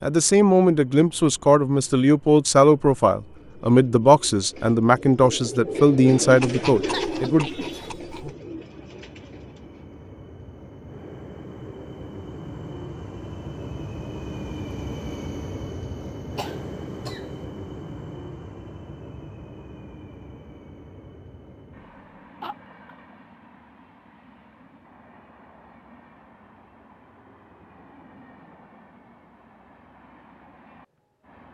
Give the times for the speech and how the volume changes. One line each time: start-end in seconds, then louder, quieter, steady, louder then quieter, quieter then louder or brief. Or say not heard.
0.0-7.5 steady.